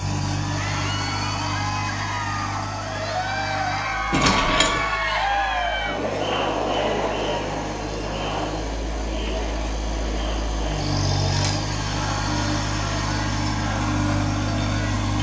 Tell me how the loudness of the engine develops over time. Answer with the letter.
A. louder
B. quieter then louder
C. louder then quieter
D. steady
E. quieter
B.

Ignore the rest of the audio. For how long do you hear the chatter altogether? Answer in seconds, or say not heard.
15 s.